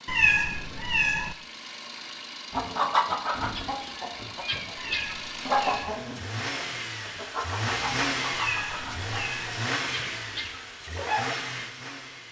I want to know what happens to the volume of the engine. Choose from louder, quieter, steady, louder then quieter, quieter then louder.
louder.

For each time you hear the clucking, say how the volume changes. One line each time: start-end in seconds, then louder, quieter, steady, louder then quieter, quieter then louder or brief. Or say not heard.
2.5-11.3 quieter.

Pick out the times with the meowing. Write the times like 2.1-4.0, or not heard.
0.1-1.4, 4.8-6.0, 8.3-9.6.